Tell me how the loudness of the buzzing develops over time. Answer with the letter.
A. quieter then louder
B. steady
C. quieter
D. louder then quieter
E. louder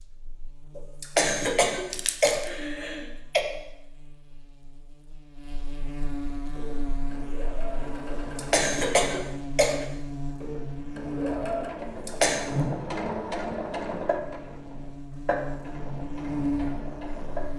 E.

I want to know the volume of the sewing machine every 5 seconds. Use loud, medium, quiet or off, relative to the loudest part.
off, medium, loud, loud.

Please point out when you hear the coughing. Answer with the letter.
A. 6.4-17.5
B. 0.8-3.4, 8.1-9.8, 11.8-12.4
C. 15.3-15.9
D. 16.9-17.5
B.